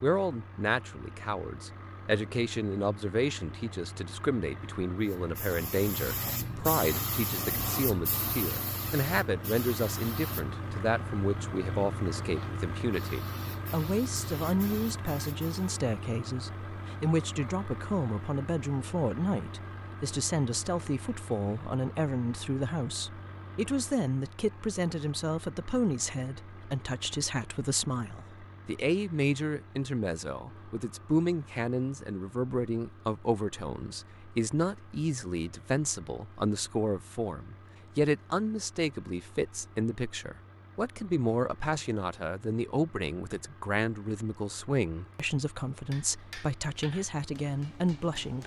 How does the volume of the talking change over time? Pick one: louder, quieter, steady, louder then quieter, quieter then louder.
steady.